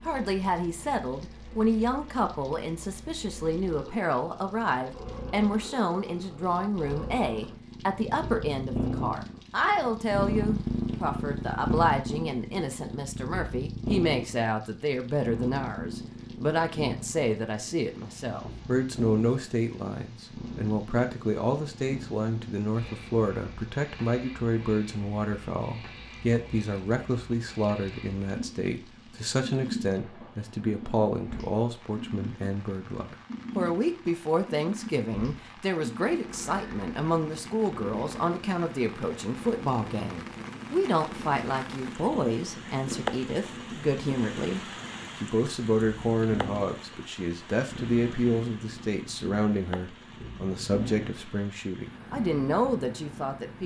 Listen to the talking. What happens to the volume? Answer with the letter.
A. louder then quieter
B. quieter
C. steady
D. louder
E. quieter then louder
C.